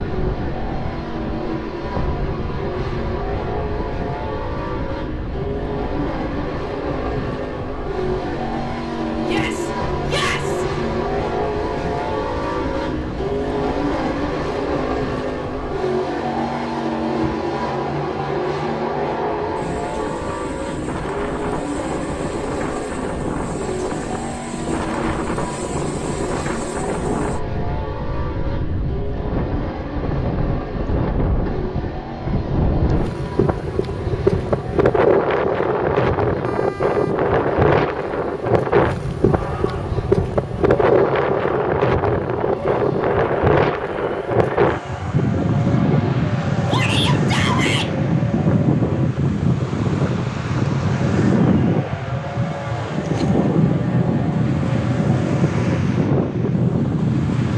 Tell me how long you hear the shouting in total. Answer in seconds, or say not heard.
3 s.